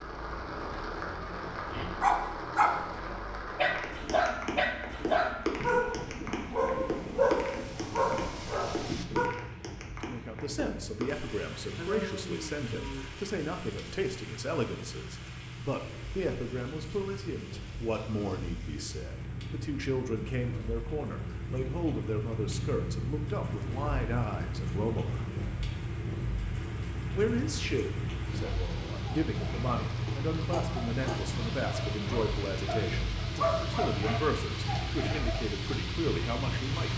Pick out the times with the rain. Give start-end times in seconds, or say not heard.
0.0-36.9.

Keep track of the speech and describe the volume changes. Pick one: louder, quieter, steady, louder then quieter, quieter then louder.
steady.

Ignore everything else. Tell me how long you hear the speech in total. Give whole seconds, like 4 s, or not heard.
25 s.